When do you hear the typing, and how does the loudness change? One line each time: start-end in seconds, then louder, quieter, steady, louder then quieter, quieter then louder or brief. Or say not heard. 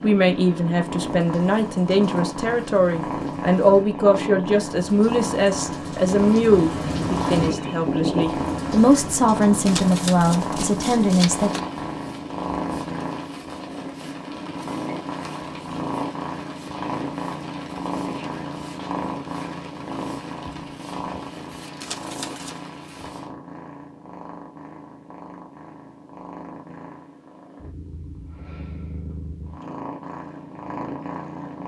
not heard.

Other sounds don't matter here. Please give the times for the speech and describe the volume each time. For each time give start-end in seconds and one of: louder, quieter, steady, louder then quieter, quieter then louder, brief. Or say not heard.
0.0-11.6 steady.